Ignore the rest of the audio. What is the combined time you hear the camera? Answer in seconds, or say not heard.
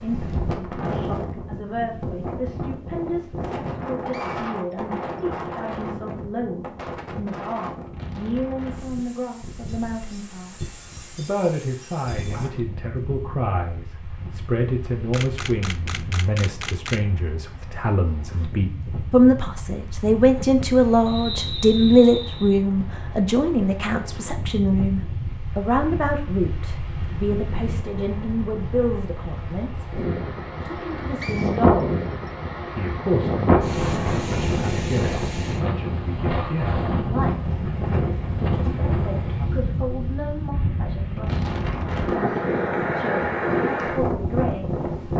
2 s.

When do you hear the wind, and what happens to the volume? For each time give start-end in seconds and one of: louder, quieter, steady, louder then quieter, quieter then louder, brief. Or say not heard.
0.0-45.1 quieter then louder.